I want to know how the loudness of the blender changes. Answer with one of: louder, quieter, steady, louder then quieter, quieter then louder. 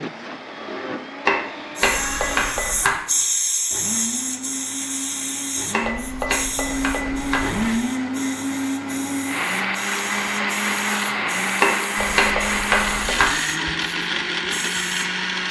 louder.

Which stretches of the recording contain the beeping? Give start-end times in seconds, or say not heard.
1.8-2.9, 5.8-7.6, 11.9-13.3.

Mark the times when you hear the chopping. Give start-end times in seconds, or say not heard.
1.2-3.0, 5.7-7.5, 11.6-13.3.